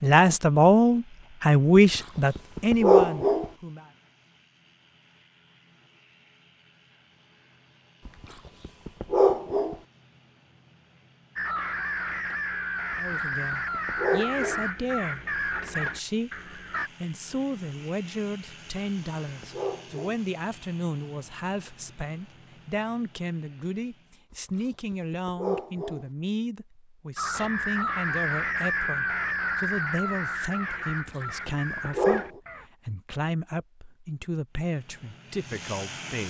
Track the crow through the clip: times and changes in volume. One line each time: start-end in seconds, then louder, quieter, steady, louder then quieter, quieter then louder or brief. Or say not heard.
11.3-16.9 steady
27.1-32.7 quieter.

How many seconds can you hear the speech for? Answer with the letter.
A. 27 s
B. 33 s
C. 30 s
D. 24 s
A.